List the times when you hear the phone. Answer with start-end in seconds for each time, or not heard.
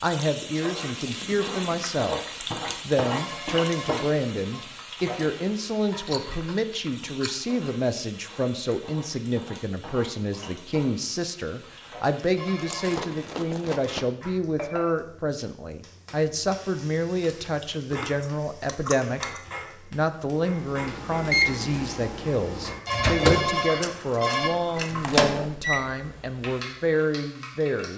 3.1-4.7, 12.3-13.1, 22.9-24.5.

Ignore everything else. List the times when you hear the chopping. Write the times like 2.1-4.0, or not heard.
not heard.